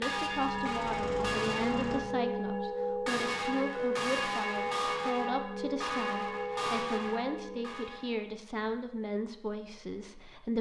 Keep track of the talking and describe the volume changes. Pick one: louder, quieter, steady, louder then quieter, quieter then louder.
steady.